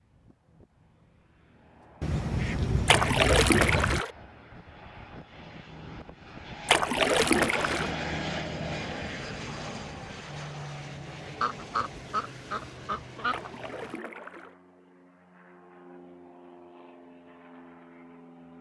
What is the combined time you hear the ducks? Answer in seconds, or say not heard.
4 s.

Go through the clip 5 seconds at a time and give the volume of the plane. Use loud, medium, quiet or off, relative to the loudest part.
quiet, loud, medium, quiet.